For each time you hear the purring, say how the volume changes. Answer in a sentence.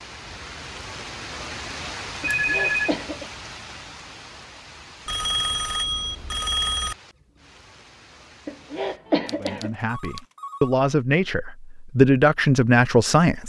The purring can't be heard in this clip.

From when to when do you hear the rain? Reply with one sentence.
The rain can be heard from 0.0 to 9.0 s.